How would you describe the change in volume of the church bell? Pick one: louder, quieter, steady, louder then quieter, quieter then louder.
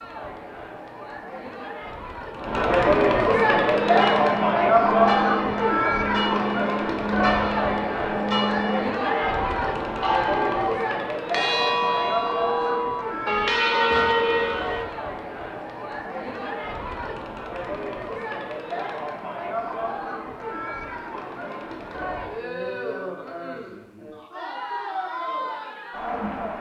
louder.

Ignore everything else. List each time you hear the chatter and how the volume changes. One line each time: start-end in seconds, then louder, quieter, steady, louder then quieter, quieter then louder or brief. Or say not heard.
0.0-26.5 quieter.